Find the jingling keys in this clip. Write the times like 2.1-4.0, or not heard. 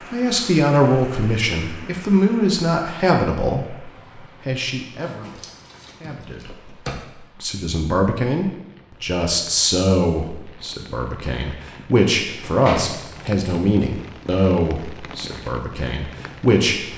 5.0-7.0, 12.4-13.5.